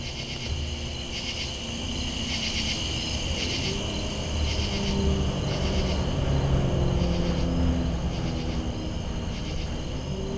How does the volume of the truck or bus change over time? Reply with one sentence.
The loudness of the truck or bus goes up, then down.